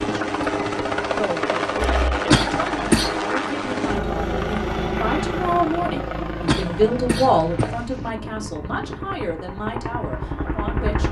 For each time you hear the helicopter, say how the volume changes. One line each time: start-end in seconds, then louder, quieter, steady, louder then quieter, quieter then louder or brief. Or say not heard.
0.0-11.0 quieter.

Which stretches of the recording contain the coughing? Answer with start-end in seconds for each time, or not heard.
2.3-3.1, 6.5-8.1.